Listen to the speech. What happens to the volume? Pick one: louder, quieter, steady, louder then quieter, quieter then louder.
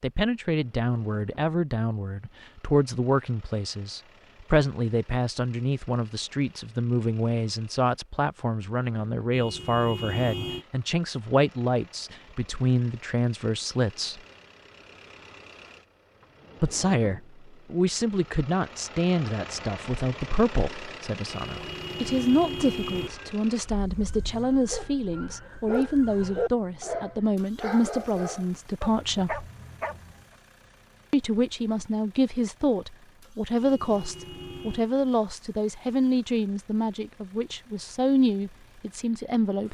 steady.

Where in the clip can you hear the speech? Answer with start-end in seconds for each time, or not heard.
0.0-14.2, 16.6-29.4, 31.1-39.6.